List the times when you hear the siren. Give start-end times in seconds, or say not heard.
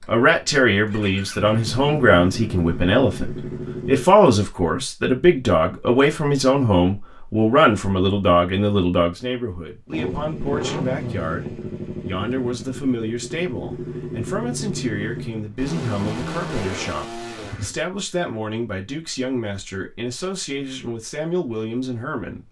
not heard.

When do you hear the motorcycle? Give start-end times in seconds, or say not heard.
0.0-4.1, 9.8-17.8.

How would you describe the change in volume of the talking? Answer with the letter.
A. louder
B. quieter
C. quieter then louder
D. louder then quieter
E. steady
B.